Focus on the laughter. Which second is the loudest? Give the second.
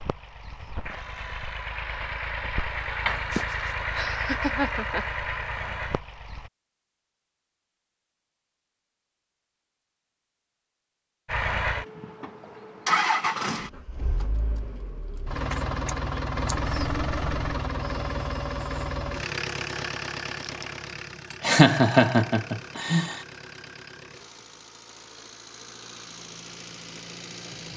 22 s.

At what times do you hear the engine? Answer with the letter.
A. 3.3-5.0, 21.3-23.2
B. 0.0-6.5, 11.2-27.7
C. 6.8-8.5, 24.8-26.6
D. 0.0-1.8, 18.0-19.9
B.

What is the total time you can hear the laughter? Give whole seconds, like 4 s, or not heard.
4 s.